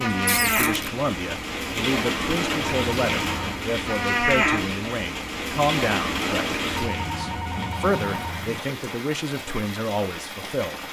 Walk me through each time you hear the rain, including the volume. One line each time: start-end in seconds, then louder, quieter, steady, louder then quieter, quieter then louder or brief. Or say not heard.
0.0-10.8 quieter.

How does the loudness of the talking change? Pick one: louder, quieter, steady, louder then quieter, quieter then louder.
steady.